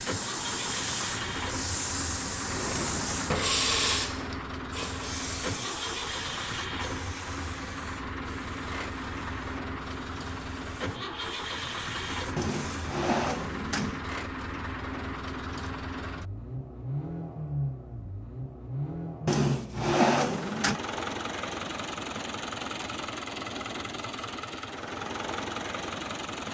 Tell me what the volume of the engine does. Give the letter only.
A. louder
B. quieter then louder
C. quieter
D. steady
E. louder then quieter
D.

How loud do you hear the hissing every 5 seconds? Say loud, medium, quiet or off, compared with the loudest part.
loud, medium, quiet, off, off, off.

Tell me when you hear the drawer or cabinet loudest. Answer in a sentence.
The volume of the drawer or cabinet peaks at 20 seconds.